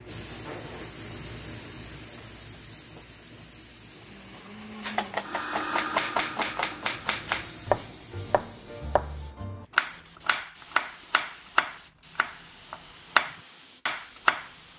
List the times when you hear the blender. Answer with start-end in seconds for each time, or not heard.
3.8-7.7.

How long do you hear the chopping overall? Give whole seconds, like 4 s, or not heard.
10 s.